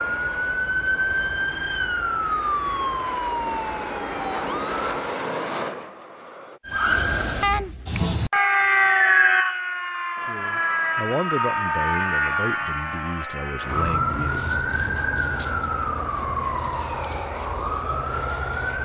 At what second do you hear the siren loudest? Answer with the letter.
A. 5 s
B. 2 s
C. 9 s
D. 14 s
C.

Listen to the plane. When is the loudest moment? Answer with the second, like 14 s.
5 s.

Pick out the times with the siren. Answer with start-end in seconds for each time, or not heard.
0.0-5.2, 6.7-18.8.